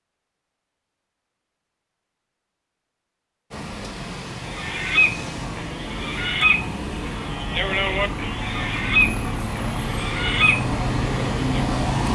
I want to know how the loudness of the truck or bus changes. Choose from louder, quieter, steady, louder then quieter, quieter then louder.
louder.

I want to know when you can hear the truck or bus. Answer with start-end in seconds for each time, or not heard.
3.5-12.1.